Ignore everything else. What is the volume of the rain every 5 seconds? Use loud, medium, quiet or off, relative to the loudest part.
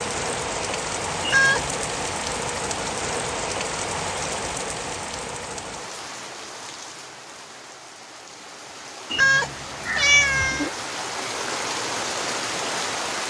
loud, medium, loud.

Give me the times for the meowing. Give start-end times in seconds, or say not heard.
1.2-1.8, 9.1-10.7.